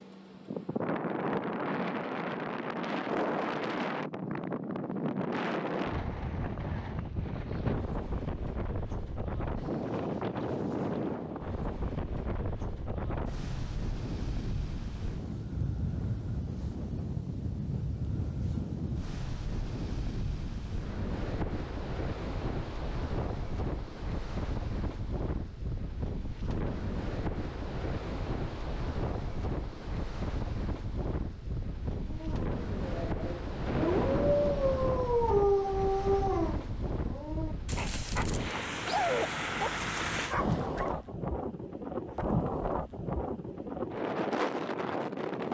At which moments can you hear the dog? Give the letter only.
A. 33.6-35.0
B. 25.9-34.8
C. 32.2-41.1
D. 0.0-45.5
C.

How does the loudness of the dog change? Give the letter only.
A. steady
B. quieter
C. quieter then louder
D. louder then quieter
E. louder
D.